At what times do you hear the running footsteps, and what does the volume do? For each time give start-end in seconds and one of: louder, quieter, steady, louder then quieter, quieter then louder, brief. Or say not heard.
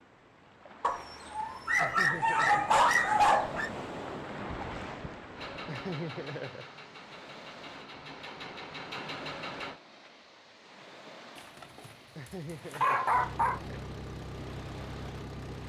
not heard.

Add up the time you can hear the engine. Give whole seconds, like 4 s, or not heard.
7 s.